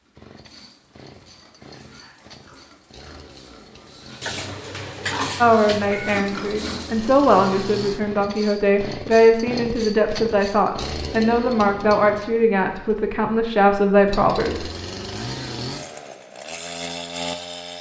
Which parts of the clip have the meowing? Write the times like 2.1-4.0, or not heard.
4.2-6.2.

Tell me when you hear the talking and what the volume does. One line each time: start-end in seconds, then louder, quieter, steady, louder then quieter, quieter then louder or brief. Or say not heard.
5.4-14.7 steady.